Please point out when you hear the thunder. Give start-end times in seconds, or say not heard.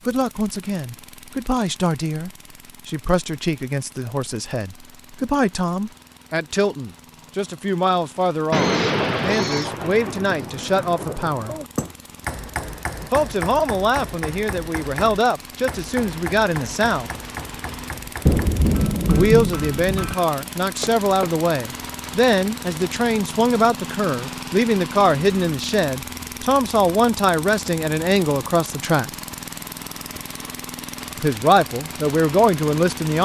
8.5-11.7, 18.2-20.1.